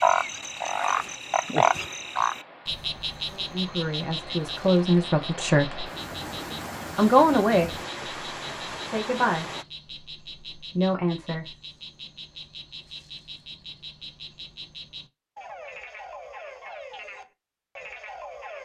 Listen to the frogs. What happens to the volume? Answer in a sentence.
The volume of the frogs goes down.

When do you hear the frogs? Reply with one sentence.
The frogs can be heard from 0.0 to 18.5 s.